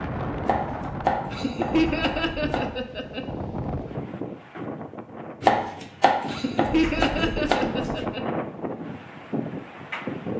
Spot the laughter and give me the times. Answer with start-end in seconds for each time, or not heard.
1.3-3.2, 6.3-8.2.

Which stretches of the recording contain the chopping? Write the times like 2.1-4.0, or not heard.
0.4-2.7, 5.4-8.1.